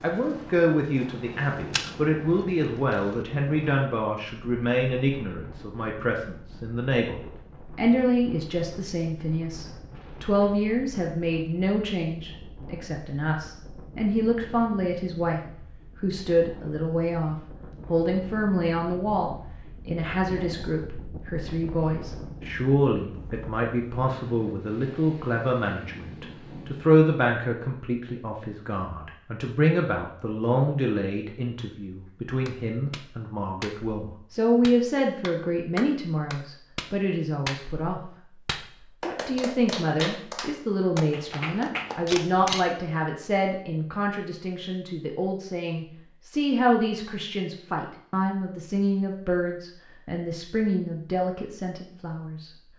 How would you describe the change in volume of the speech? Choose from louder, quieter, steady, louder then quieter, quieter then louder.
steady.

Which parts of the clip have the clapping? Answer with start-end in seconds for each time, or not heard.
32.5-42.1.